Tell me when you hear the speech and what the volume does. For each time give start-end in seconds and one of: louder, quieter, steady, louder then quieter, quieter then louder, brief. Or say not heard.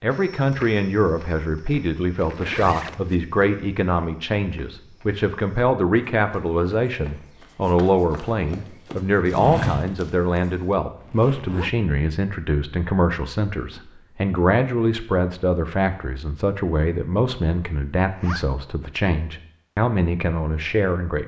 0.0-21.2 steady.